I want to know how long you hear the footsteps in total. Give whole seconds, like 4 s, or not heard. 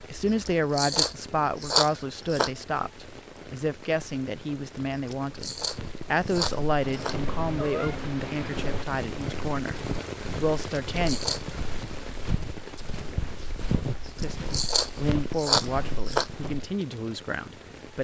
11 s.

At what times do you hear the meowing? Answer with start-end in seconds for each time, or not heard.
6.8-8.8.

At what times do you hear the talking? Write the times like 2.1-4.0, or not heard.
0.0-11.2, 14.2-17.9.